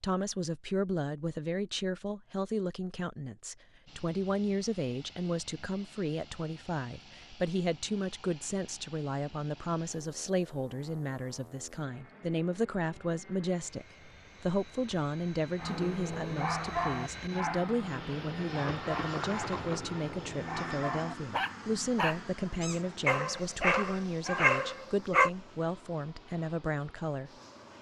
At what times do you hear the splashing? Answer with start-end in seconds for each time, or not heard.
18.8-19.8.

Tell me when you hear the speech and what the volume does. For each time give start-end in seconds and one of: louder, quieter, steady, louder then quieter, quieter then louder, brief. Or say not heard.
0.0-27.3 steady.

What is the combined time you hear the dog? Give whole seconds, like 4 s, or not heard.
10 s.